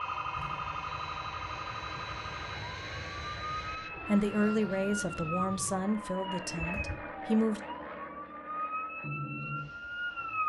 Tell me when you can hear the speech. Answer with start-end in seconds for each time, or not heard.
4.0-7.6.